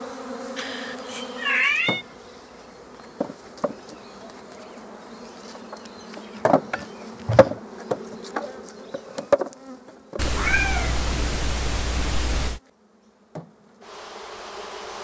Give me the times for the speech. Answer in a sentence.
You can't hear the speech here.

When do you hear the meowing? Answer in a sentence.
You can hear the meowing from 0.6 to 2.0 s, from 5.8 to 7.6 s and from 10.2 to 12.6 s.